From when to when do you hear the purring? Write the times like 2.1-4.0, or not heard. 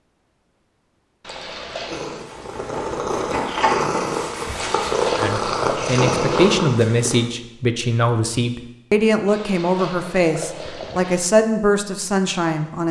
1.9-7.2.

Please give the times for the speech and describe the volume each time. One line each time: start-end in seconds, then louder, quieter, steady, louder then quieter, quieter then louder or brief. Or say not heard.
5.2-12.8 steady.